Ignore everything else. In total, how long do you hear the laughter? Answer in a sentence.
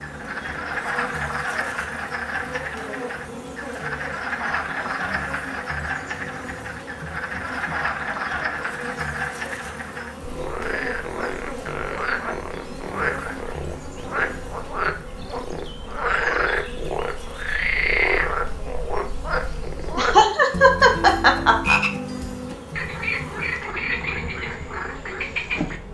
The laughter can be heard for 2 seconds in total.